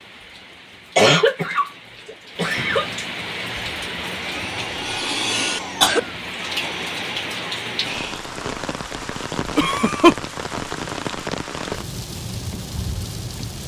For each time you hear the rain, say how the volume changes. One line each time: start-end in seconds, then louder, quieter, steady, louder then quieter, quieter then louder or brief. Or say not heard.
0.0-13.6 louder.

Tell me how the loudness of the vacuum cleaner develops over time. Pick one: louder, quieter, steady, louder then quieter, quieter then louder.
louder then quieter.